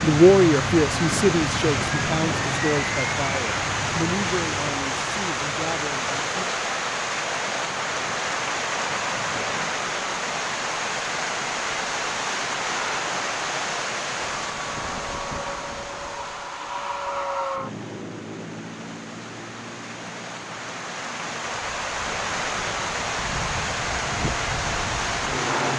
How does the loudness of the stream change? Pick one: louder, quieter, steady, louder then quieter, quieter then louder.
quieter then louder.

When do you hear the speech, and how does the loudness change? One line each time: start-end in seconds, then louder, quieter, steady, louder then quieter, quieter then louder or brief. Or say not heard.
0.0-6.5 quieter.